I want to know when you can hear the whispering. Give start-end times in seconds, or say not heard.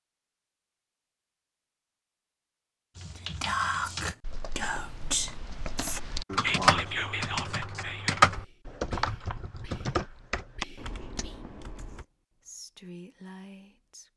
3.1-14.1.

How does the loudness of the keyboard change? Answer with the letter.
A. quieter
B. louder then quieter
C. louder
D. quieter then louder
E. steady
B.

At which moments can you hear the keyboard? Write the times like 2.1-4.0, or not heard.
3.0-12.1.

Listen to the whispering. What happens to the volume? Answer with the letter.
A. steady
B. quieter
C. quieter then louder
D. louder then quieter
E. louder
C.